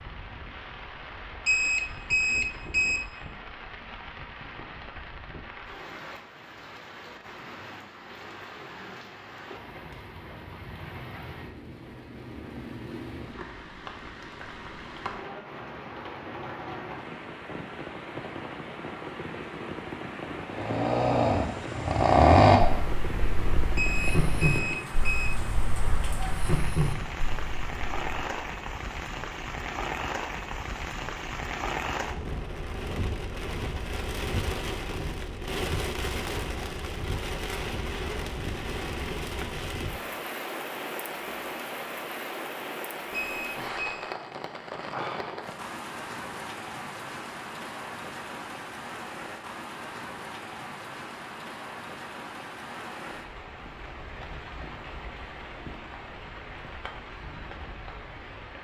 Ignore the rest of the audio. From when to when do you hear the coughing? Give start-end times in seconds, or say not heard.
not heard.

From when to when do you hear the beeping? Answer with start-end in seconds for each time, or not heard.
1.4-3.0, 23.8-25.3, 43.1-44.1.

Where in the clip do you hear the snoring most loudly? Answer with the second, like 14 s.
22 s.